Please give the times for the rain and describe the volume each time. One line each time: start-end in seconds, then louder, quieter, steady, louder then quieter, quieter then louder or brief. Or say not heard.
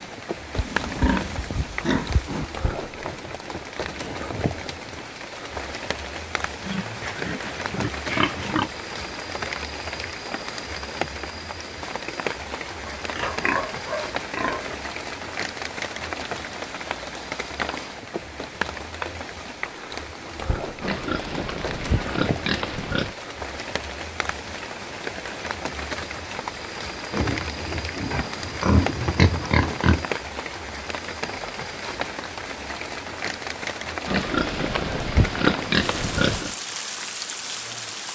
0.0-38.1 steady.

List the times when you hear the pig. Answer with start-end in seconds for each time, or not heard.
0.6-2.5, 6.7-8.7, 12.8-14.8, 20.8-23.1, 27.1-30.1, 34.0-36.5.